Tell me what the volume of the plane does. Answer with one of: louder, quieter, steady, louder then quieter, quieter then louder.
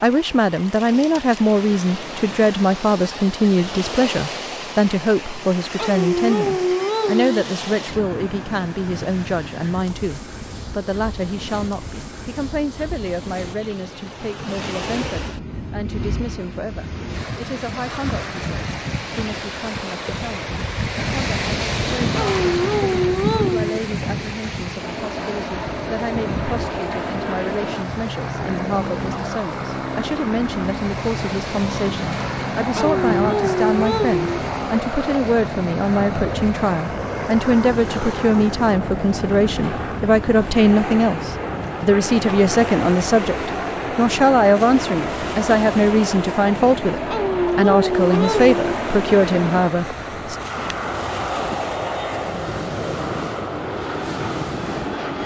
steady.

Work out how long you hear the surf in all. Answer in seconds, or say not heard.
55 s.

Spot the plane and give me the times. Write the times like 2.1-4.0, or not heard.
24.8-55.2.